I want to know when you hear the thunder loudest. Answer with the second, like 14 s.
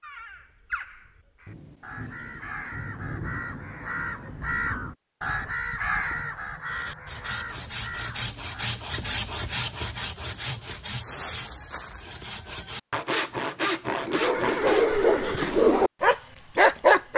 3 s.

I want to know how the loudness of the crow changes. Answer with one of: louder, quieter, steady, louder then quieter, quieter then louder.
louder then quieter.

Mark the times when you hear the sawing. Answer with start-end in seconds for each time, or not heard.
6.7-15.1.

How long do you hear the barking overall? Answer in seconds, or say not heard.
3 s.